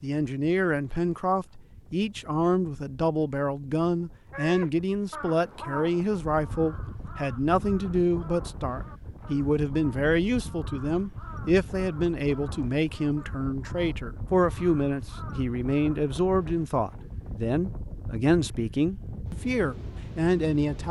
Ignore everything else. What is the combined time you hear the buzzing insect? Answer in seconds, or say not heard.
not heard.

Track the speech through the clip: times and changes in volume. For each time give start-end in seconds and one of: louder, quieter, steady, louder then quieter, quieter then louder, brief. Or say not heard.
0.0-20.8 steady.